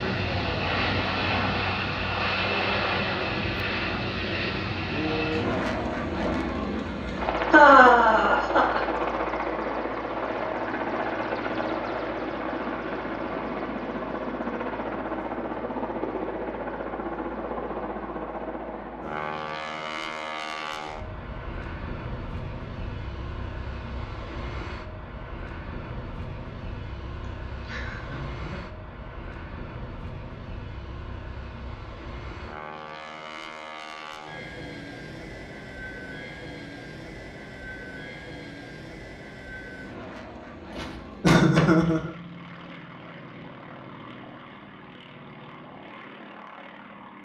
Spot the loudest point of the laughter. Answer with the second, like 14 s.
8 s.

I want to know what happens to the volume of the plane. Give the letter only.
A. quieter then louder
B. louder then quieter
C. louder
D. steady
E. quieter
E.